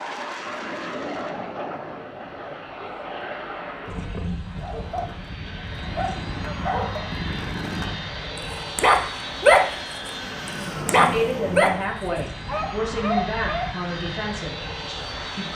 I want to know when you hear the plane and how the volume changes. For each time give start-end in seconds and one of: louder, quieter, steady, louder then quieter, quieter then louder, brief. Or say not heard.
0.0-15.5 steady.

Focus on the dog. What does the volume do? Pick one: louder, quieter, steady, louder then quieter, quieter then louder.
louder then quieter.